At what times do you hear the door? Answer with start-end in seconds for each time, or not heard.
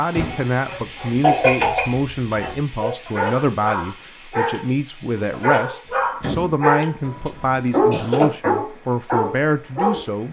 0.1-0.5, 5.8-7.3.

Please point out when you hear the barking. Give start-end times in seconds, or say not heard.
0.2-4.7, 5.3-6.9, 7.7-10.0.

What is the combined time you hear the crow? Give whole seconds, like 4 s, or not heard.
not heard.